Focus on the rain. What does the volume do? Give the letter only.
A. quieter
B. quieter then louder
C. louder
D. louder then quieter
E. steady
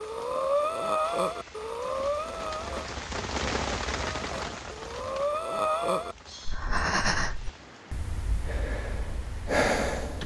D.